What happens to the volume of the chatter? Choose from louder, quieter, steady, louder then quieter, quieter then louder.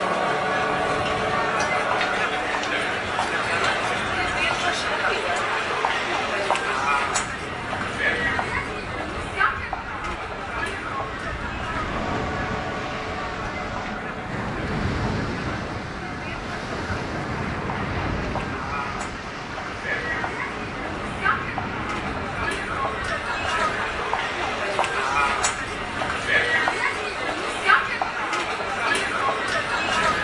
quieter then louder.